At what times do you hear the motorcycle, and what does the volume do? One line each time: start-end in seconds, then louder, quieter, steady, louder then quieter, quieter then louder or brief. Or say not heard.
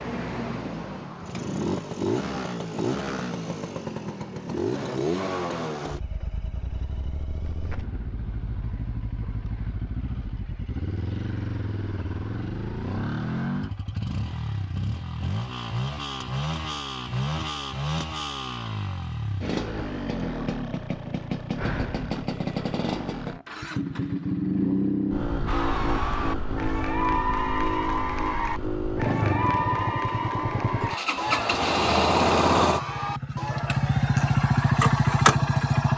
0.0-35.9 louder.